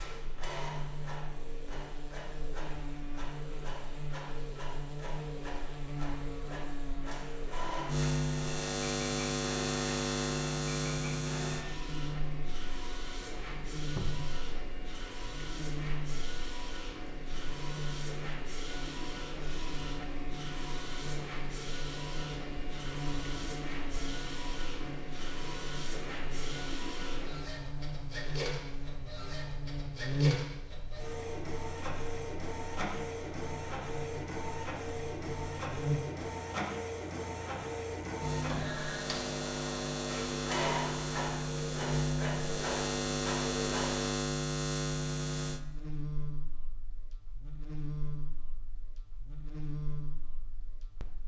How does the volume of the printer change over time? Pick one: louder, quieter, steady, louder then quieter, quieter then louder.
louder.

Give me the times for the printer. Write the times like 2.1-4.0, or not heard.
0.0-44.1.